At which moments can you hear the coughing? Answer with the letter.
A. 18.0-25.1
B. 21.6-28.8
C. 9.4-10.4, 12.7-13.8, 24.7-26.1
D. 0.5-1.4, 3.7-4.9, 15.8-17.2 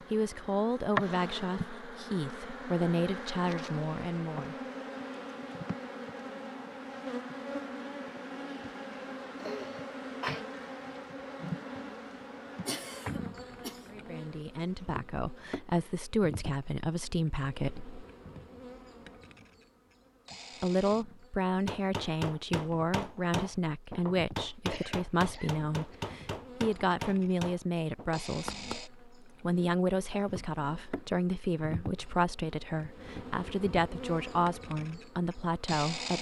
C.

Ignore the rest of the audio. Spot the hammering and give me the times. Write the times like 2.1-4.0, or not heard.
21.6-28.8.